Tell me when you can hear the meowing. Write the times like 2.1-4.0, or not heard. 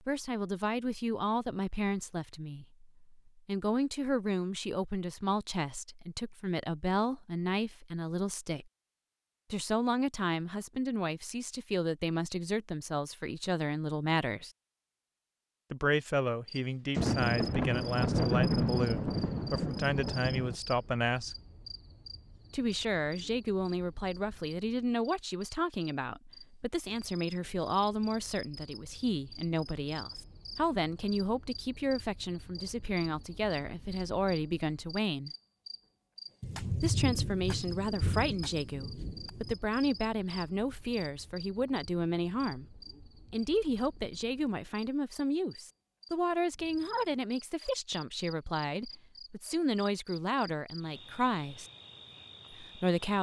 not heard.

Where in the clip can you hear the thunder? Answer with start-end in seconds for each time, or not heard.
16.9-20.6, 36.4-39.5.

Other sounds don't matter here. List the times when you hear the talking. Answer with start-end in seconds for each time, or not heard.
0.1-8.7, 9.5-14.5, 15.7-21.4, 22.5-35.3, 36.8-51.6, 52.5-53.1.